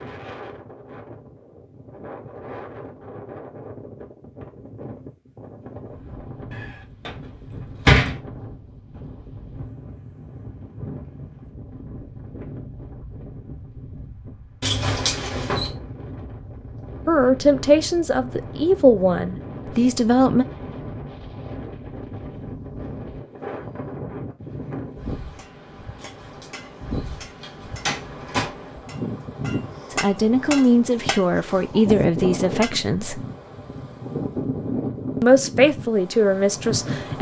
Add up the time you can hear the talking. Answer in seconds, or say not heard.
9 s.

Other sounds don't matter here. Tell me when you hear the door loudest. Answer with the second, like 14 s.
8 s.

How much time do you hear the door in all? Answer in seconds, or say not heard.
5 s.